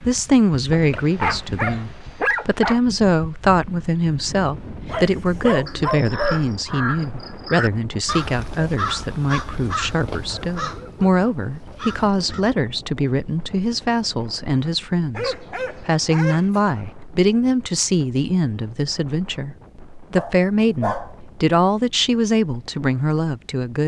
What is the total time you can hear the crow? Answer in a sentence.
You can hear the crow for 7 seconds altogether.